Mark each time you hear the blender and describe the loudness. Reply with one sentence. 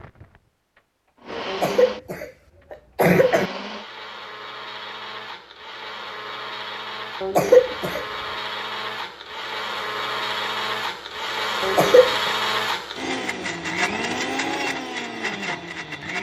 The blender can be heard briefly from 0.0 to 2.1 s; and from 3.0 to 16.1 s, getting louder.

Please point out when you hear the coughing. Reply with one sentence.
You can hear the coughing from 1.4 to 3.5 s, from 7.2 to 8.1 s and from 11.6 to 12.3 s.